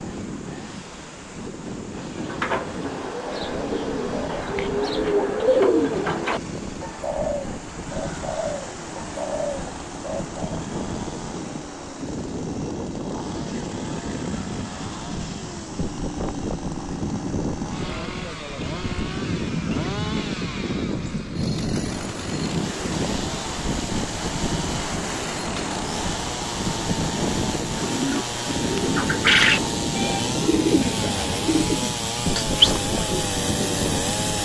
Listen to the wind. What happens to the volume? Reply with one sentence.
The volume of the wind goes up.